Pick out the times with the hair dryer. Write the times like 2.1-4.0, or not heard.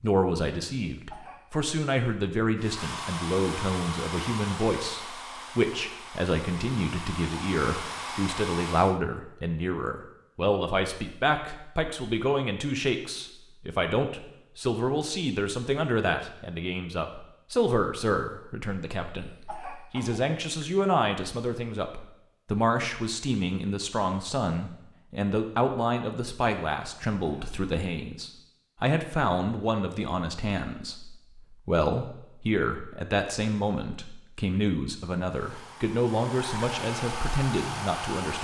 2.5-9.0, 35.3-38.3.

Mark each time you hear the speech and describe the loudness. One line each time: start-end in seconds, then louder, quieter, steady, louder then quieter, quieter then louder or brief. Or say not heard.
0.0-38.3 steady.